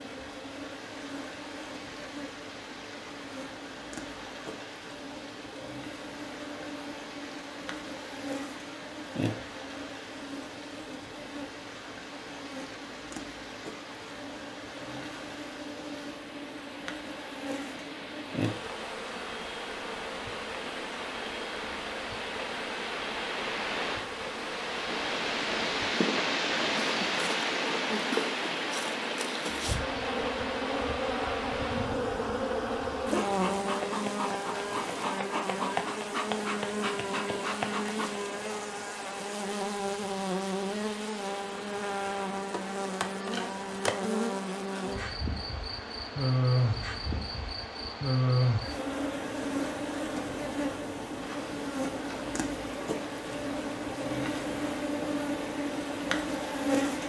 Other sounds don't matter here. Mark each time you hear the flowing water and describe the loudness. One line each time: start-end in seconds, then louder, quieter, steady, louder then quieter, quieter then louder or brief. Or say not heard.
0.0-57.0 louder then quieter.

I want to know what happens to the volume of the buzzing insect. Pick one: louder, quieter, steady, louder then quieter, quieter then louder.
louder.